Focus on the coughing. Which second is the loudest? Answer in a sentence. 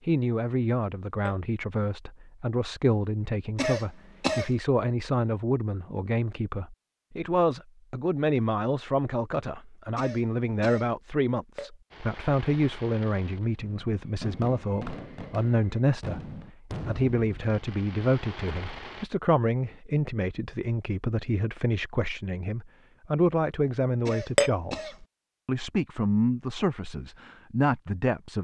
The loudest moment of the coughing is at 4 seconds.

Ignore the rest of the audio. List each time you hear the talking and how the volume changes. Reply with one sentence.
The talking can be heard from 0.1 to 28.3 s, at a steady volume.